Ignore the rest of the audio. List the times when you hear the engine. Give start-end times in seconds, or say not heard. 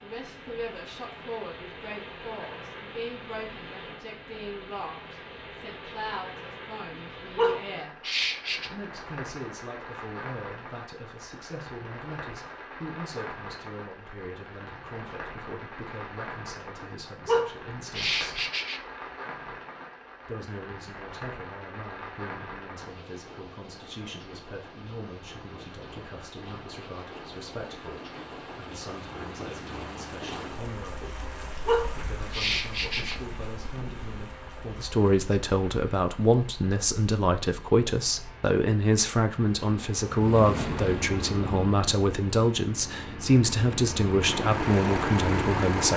40.0-45.9.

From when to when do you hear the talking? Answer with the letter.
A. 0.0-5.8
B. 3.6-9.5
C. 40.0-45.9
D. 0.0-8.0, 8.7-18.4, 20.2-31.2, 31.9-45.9
D.